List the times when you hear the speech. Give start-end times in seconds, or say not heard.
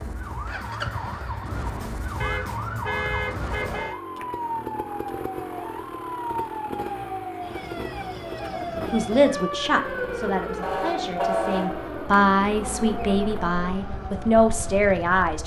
8.9-15.4.